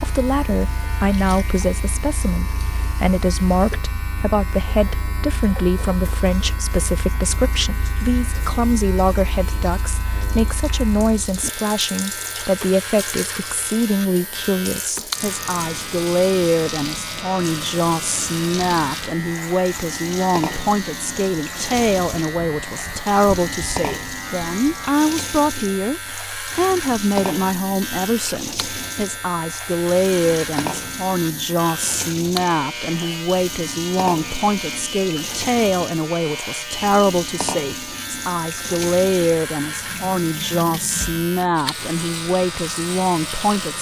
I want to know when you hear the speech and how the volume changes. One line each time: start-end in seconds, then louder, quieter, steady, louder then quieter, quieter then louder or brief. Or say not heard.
0.0-43.7 steady.